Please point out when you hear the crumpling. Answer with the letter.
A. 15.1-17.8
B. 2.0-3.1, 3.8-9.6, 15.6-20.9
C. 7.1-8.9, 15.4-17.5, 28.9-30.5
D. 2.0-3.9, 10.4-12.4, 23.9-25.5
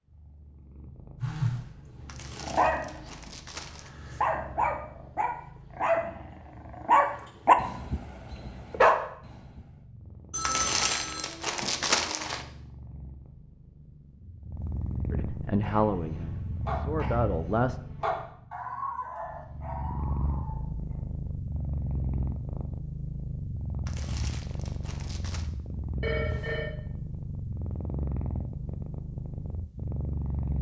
D.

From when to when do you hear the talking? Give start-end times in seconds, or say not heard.
15.1-17.8.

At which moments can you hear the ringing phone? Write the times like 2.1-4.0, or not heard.
1.2-1.6, 10.3-11.2, 26.0-26.7.